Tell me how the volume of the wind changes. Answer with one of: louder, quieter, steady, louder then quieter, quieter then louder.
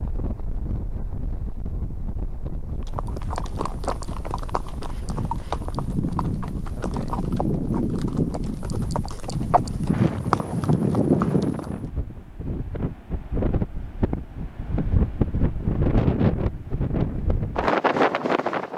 louder.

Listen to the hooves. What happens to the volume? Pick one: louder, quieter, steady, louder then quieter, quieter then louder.
louder.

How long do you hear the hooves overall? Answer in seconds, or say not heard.
9 s.